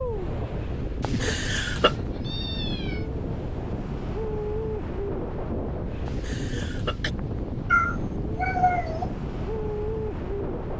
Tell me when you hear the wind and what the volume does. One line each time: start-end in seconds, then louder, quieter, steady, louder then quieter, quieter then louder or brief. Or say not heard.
0.0-10.7 steady.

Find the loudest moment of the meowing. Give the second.
8 s.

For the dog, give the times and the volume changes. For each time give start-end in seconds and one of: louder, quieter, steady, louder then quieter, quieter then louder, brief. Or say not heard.
not heard.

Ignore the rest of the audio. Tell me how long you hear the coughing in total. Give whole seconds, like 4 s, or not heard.
2 s.